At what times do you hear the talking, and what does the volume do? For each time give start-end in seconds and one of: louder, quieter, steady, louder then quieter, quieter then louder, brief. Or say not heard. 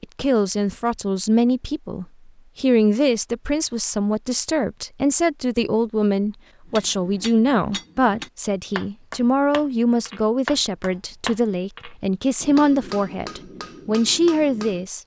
0.0-15.0 steady.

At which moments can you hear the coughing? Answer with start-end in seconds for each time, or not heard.
not heard.